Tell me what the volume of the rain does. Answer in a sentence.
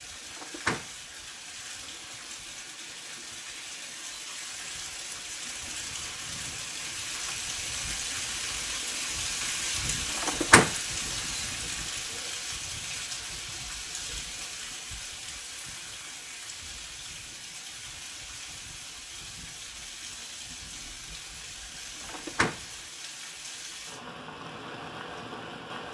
The loudness of the rain goes up, then down.